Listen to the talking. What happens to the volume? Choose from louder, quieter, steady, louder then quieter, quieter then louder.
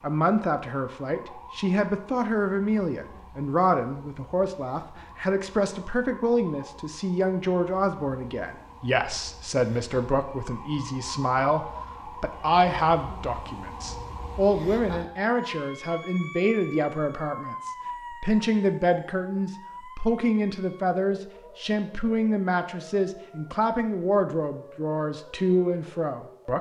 steady.